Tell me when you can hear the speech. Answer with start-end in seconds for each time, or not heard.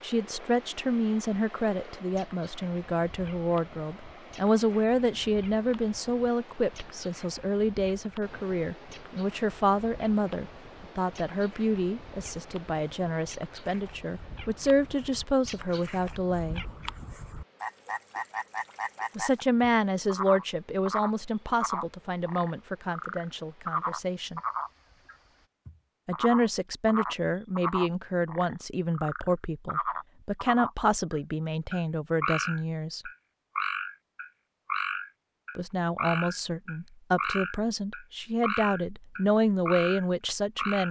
0.0-16.6, 19.1-24.4, 26.1-33.1, 35.5-40.8.